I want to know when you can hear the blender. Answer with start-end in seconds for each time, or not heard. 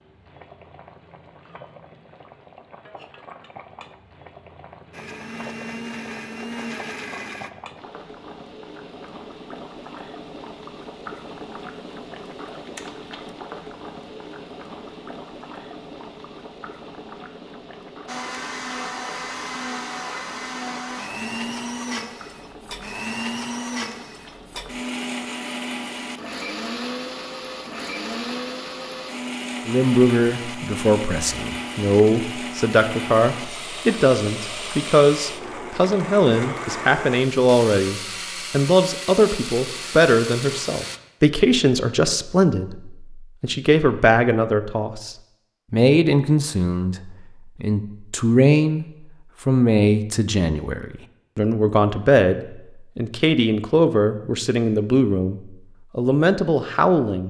4.9-7.5, 18.1-41.0.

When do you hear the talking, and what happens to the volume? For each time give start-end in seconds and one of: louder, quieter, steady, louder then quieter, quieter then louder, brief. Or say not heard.
29.6-57.2 steady.